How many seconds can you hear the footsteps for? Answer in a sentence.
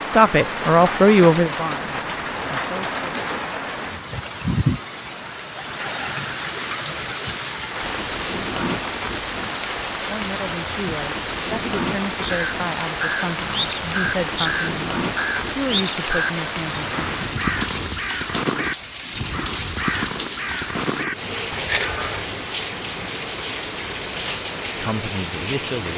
The footsteps can't be heard in this clip.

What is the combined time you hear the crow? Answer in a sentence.
The crow can be heard for 10 seconds in total.